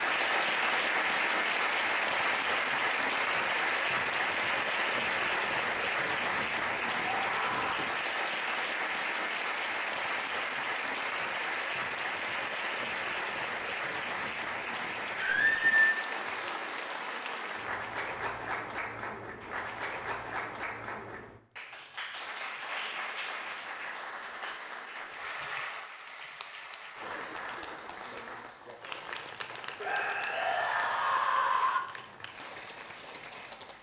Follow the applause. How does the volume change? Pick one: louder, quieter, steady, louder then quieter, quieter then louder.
quieter.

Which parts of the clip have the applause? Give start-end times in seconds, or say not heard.
0.0-33.7.